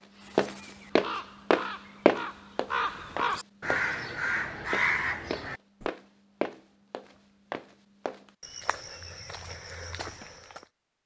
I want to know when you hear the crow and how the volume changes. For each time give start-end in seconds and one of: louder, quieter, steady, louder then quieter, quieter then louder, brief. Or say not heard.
0.1-5.9 louder.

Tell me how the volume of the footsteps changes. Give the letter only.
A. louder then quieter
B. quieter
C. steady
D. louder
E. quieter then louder
B.